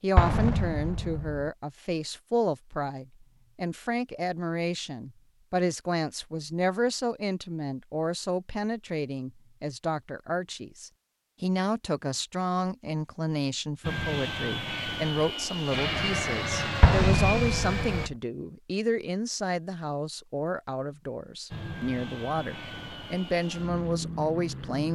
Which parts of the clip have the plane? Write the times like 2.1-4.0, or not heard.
13.8-18.1, 21.5-24.8.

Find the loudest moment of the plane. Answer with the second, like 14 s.
16 s.